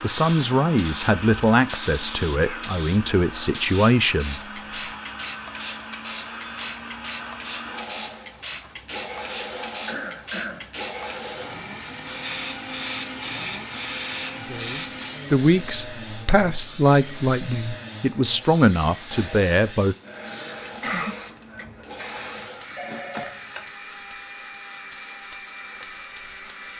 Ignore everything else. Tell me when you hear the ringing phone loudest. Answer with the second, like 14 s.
23 s.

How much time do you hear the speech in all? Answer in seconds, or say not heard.
10 s.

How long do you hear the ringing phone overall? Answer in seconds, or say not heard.
2 s.